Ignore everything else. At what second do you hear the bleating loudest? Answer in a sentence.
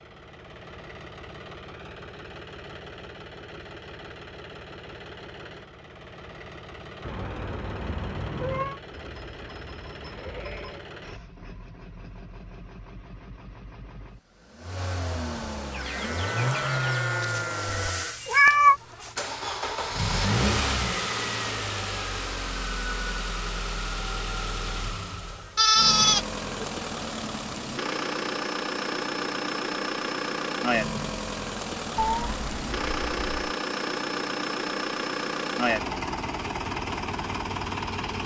The volume of the bleating peaks at 26 seconds.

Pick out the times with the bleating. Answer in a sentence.
You can hear the bleating from 8.9 to 10.8 s, from 15.8 to 18.2 s and from 25.6 to 26.6 s.